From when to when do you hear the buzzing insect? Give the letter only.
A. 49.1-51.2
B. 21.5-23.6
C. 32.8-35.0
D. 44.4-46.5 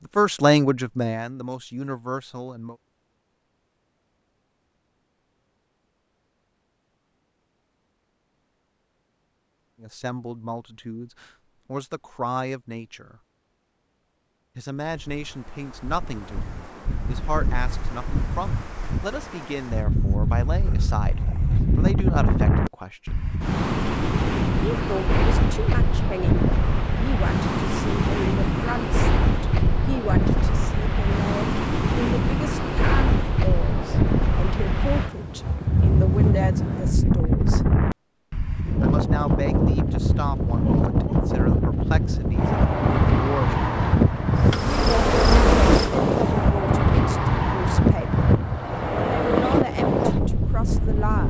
D.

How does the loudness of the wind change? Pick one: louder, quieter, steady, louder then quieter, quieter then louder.
louder.